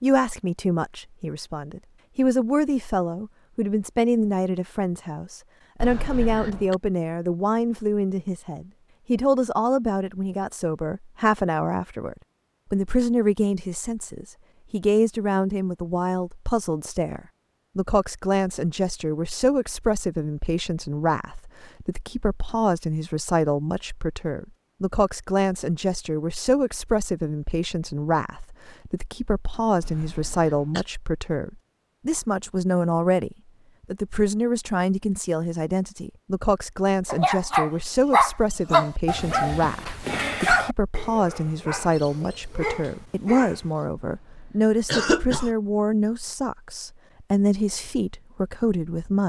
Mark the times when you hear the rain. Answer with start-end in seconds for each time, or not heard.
not heard.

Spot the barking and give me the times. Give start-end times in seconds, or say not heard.
37.0-43.9.